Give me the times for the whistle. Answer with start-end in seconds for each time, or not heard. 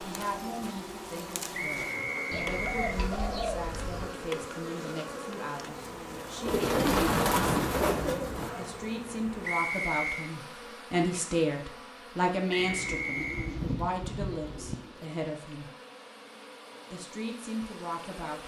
1.5-3.0, 9.4-10.3, 12.5-13.6.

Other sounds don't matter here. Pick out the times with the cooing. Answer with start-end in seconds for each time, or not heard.
2.3-4.2, 6.5-8.5, 12.6-15.1.